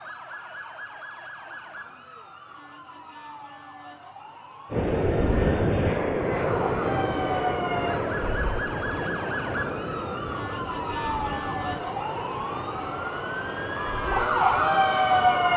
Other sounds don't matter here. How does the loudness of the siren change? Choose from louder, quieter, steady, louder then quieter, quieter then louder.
louder.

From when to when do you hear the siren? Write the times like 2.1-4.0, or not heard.
0.0-15.5.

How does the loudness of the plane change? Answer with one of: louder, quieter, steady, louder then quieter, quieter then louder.
quieter.